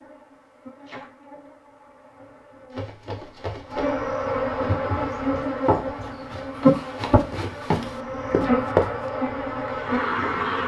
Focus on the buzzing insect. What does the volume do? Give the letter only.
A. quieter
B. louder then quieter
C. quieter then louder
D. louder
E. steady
D.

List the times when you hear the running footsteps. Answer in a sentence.
The running footsteps can be heard from 2.7 to 8.9 s.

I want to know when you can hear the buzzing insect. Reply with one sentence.
The buzzing insect can be heard from 0.0 to 10.6 s.